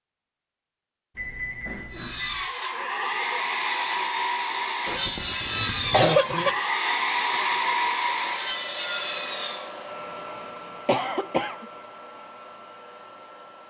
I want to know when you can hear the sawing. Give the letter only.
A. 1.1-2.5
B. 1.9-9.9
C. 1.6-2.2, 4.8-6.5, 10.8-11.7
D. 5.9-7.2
B.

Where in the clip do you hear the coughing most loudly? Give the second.
6 s.